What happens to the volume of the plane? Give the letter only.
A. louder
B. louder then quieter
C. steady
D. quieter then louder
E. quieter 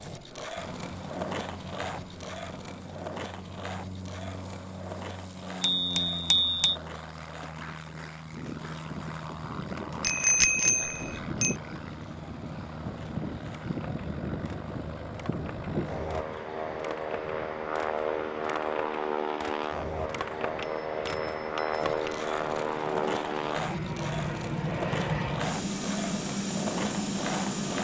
A.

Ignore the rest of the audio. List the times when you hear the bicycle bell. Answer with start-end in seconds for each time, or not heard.
5.6-6.8, 10.0-11.6, 20.6-22.3.